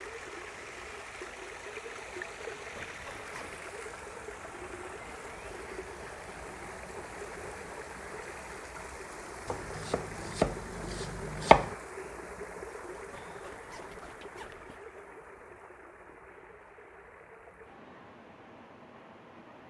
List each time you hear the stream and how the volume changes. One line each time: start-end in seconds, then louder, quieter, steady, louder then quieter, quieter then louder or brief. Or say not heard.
0.0-19.6 quieter.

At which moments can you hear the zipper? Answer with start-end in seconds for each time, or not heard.
2.5-3.6, 12.9-14.8.